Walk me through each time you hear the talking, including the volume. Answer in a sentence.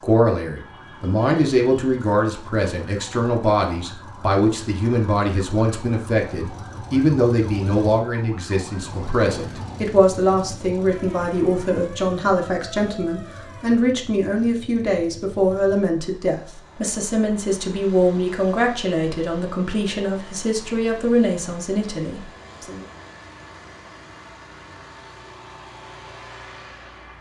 You can hear the talking from 0.0 to 22.9 s, at a steady volume.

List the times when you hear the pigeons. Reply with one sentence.
You can't hear the pigeons here.